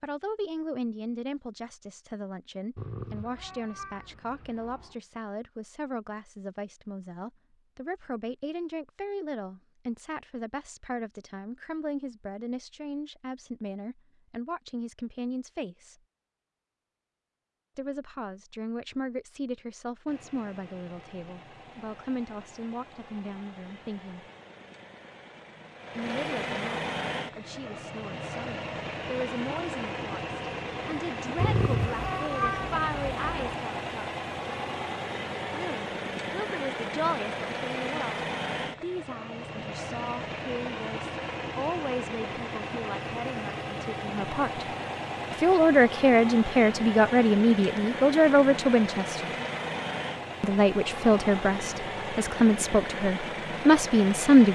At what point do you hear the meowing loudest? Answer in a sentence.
The loudest moment of the meowing is at 32 seconds.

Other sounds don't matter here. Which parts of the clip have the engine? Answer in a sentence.
You can hear the engine from 20.1 to 54.5 s.